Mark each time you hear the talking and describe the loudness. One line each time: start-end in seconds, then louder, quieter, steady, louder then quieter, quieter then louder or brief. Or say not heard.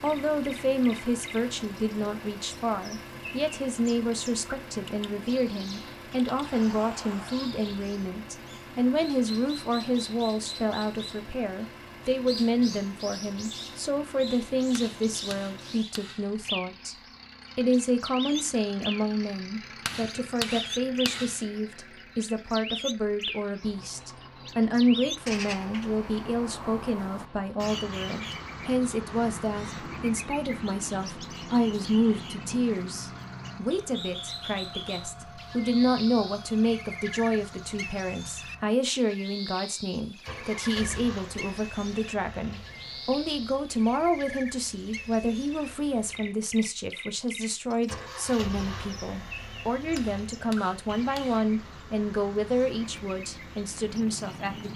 0.0-16.9 steady
17.6-54.7 steady.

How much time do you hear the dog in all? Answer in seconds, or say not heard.
not heard.